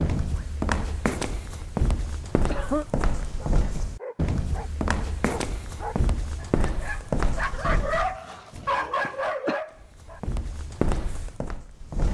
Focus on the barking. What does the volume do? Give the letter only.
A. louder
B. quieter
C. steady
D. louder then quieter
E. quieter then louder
A.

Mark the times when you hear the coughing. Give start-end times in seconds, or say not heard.
2.0-2.9, 9.1-9.7.